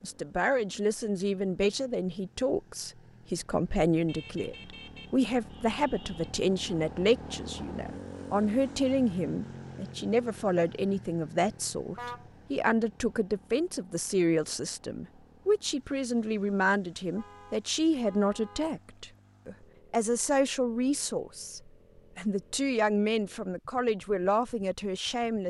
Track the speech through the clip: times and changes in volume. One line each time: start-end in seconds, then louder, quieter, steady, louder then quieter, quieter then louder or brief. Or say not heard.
0.0-25.4 steady.